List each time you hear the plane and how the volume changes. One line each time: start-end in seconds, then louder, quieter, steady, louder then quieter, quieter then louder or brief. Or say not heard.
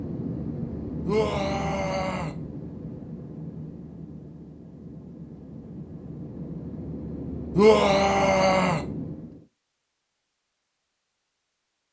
0.0-9.4 quieter then louder.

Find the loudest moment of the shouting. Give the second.
8 s.